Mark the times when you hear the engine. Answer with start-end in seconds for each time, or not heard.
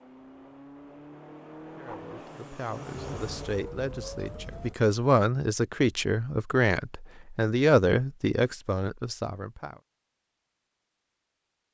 0.0-3.6.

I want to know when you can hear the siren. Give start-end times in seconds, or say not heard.
3.0-4.8.